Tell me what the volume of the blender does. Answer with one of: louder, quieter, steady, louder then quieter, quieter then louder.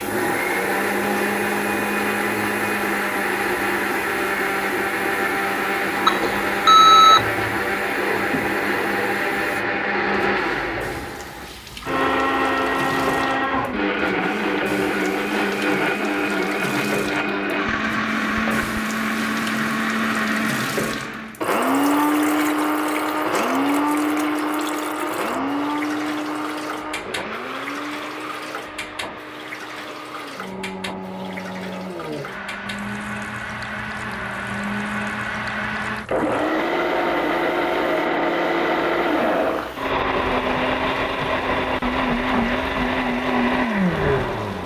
quieter then louder.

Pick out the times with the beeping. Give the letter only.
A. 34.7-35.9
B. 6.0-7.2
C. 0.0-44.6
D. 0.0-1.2
B.